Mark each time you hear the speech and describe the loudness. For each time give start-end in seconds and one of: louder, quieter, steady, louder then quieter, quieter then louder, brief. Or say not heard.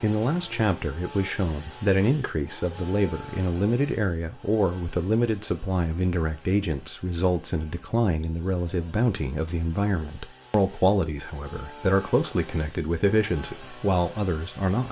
0.0-14.8 steady.